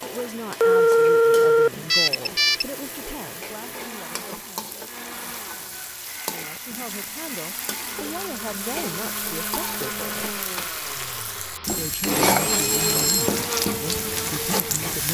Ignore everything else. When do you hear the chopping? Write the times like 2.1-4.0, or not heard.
not heard.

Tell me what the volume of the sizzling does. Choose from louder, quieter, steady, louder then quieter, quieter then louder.
louder.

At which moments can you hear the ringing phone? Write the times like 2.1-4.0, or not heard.
0.6-2.6, 11.7-13.3.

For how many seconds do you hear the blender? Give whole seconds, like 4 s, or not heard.
15 s.